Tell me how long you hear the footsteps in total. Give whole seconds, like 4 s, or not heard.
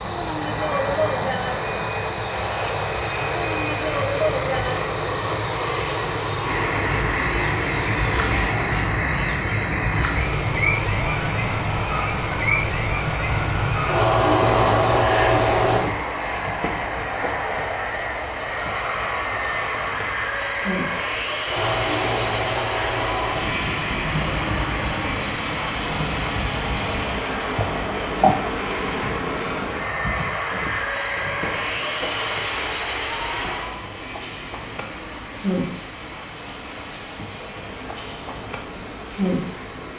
not heard.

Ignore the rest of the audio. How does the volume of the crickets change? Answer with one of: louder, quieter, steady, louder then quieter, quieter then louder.
quieter then louder.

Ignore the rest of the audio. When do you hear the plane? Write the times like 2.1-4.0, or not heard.
0.0-39.9.